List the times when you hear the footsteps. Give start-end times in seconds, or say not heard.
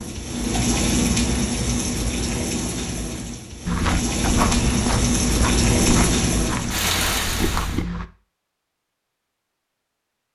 3.6-8.1.